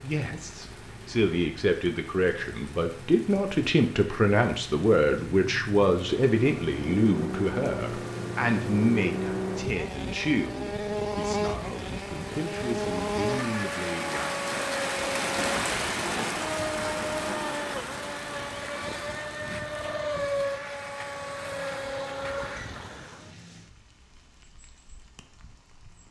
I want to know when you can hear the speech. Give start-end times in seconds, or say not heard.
0.0-14.4.